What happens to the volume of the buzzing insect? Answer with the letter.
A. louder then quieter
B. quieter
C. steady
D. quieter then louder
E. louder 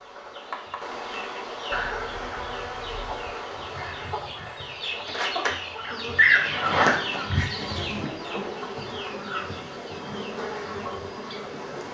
C.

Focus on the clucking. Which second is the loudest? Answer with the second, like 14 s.
6 s.